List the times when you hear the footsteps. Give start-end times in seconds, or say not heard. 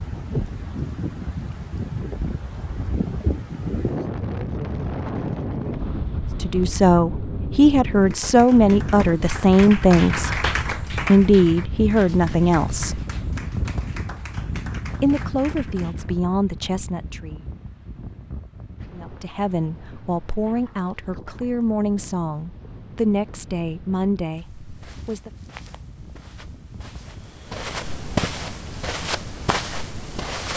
24.3-30.5.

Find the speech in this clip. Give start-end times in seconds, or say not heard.
6.4-13.0, 15.0-17.4, 18.9-25.3.